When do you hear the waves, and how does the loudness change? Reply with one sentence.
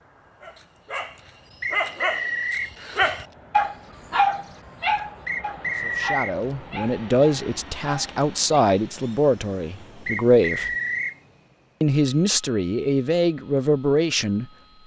You can't hear the waves here.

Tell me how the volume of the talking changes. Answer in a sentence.
The loudness of the talking stays about the same.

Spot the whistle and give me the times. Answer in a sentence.
The whistle can be heard from 1.6 to 2.7 s, from 5.2 to 6.3 s and from 10.1 to 11.2 s.